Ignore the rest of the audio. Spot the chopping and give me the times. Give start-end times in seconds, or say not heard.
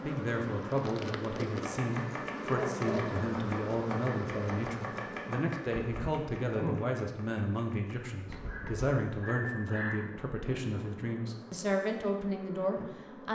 1.6-8.0.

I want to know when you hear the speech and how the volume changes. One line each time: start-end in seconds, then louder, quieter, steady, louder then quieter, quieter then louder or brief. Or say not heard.
0.0-13.3 steady.